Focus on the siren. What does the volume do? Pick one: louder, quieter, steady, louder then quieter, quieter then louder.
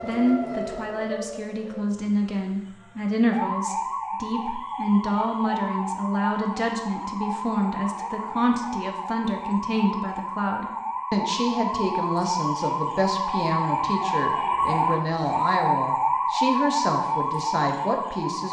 louder.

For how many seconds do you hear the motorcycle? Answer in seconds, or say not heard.
not heard.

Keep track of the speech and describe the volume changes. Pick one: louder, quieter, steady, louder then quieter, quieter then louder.
steady.